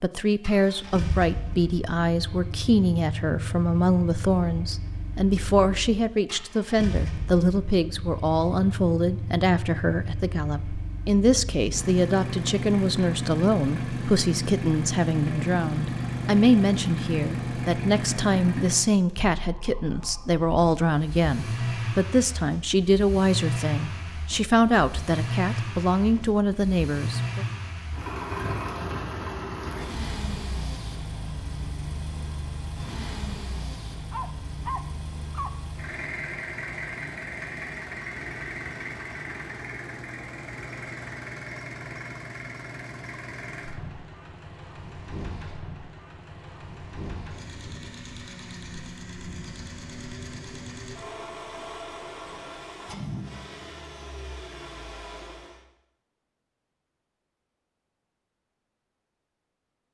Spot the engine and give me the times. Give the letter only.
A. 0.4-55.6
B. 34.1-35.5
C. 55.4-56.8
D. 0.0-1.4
A.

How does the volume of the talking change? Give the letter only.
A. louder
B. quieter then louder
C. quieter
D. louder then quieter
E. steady
E.